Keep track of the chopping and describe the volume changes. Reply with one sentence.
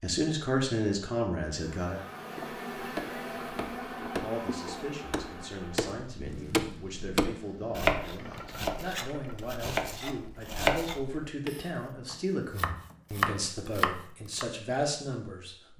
The loudness of the chopping goes up.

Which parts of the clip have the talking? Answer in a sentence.
The talking can be heard from 0.0 to 2.0 s and from 4.0 to 15.7 s.